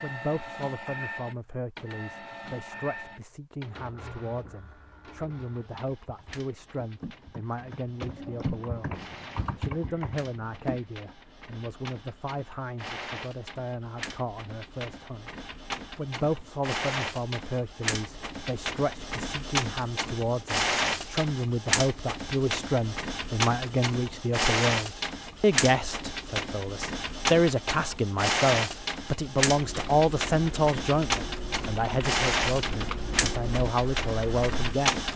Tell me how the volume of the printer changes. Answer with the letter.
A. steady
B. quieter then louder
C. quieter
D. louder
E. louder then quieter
D.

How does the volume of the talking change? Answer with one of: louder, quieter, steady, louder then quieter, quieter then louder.
louder.